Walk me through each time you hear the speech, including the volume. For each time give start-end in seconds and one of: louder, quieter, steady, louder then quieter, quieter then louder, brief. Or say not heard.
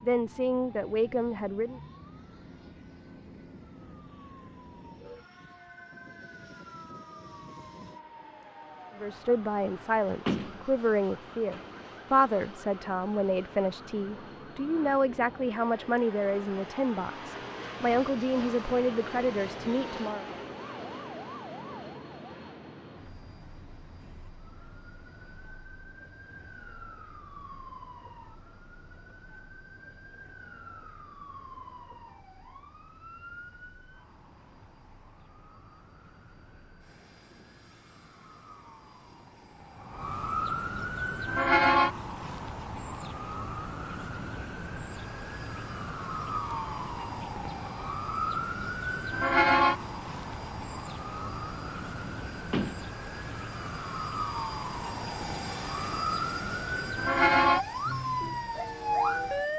0.0-1.8 brief
8.9-20.2 steady.